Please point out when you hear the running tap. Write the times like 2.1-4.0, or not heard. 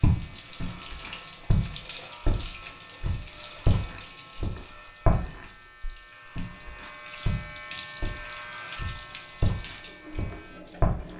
0.0-11.1.